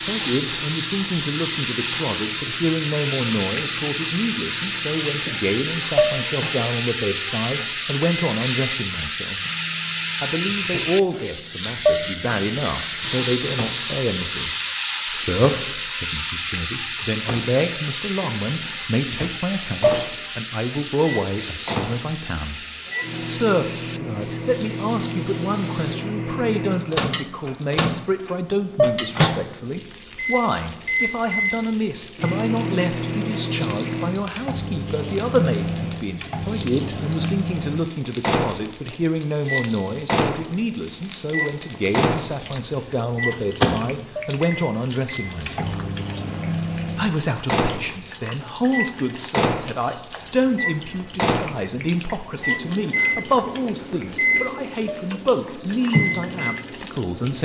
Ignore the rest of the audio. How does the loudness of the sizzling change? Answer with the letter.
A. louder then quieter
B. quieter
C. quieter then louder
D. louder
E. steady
B.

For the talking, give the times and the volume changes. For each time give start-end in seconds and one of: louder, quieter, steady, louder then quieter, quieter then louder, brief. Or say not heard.
0.0-9.4 steady
10.2-22.6 steady
23.2-45.8 steady
47.0-57.3 steady.